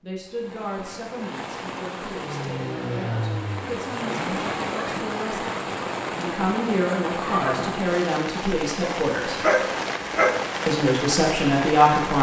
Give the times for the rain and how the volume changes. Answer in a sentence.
The rain can be heard from 0.1 to 12.1 s, getting louder.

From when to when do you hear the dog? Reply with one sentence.
You can hear the dog from 8.8 to 10.4 s.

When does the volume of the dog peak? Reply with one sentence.
The volume of the dog peaks at 10 seconds.